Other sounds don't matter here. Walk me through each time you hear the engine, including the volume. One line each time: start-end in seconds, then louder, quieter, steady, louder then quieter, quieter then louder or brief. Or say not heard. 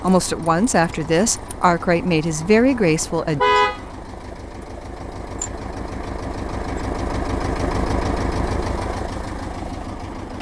0.0-10.3 louder.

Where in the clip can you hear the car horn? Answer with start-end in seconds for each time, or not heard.
3.0-3.8.